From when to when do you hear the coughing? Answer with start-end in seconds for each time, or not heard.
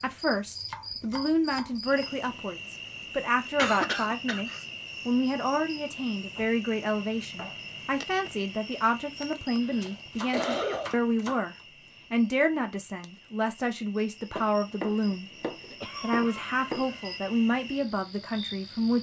3.5-4.6, 9.6-10.9, 15.8-17.2.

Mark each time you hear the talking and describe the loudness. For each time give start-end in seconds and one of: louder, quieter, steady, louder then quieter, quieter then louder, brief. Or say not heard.
0.0-18.9 steady.